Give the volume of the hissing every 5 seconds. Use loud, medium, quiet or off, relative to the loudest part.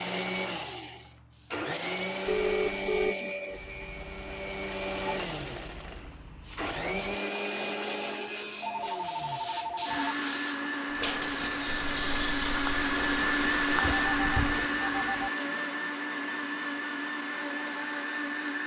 quiet, medium, loud, off.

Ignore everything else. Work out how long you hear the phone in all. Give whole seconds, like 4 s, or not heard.
4 s.